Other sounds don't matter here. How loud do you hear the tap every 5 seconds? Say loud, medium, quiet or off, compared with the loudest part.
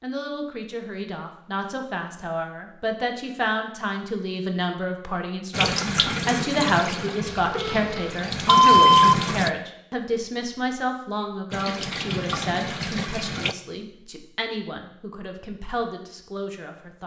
off, loud, loud, off.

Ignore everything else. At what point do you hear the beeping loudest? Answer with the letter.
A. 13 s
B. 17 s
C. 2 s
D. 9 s
D.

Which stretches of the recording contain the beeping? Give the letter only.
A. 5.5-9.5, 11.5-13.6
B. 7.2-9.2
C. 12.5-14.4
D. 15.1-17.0
B.